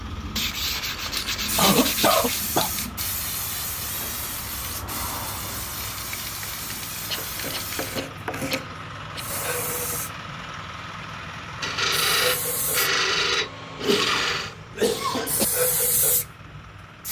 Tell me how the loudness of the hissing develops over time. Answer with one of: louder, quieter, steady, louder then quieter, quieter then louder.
steady.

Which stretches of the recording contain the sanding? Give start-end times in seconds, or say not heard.
0.3-2.5, 7.2-8.7, 11.6-14.6.